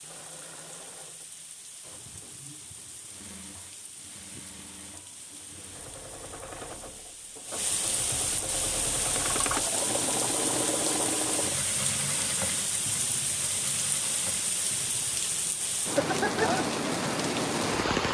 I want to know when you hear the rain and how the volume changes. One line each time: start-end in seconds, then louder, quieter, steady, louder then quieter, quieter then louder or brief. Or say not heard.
0.0-18.0 louder.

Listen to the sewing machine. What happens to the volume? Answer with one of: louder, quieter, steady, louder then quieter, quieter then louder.
louder then quieter.